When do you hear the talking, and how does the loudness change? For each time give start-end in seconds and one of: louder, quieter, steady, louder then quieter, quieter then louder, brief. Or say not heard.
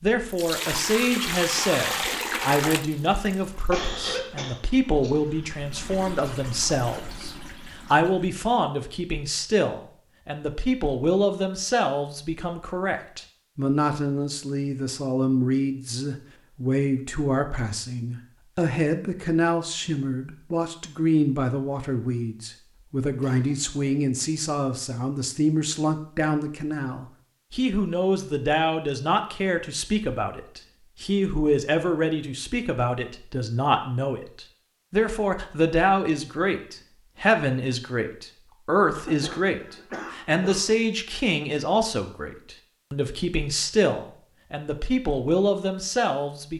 0.0-46.5 steady.